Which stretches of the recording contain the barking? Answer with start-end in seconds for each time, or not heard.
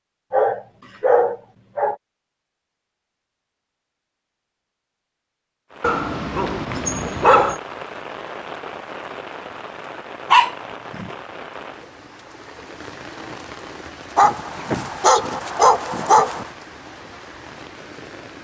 0.3-1.9, 5.8-7.5, 10.3-11.1, 14.2-16.5.